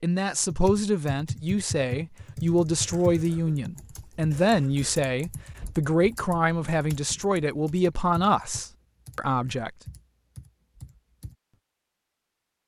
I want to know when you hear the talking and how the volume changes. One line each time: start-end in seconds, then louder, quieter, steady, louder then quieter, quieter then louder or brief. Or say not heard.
0.0-9.7 steady.